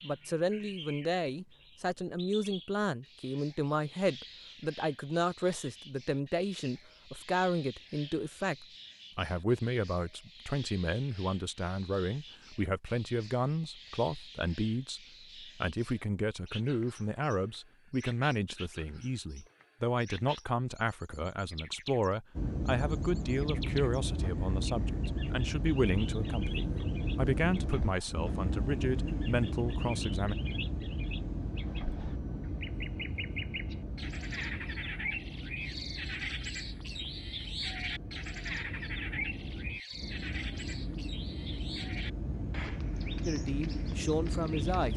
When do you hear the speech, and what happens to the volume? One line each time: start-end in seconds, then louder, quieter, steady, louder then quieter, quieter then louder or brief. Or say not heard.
0.0-30.4 steady
43.2-44.9 brief.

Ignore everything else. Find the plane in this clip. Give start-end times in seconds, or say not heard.
22.4-44.9.